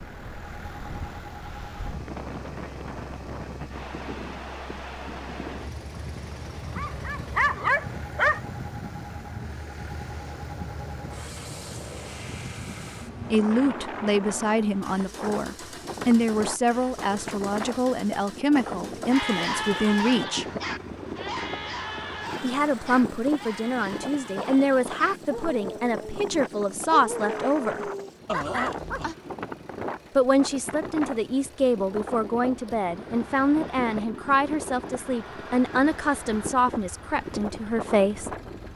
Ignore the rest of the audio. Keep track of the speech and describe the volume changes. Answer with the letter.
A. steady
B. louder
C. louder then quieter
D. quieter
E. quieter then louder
A.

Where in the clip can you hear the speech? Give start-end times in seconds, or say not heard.
13.3-20.4, 22.4-27.9, 30.1-38.3.